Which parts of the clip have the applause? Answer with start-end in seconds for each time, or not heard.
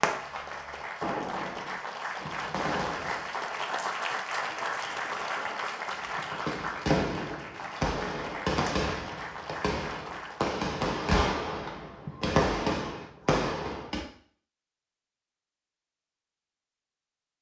0.0-10.5.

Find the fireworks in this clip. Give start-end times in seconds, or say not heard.
0.0-3.3, 6.0-14.1.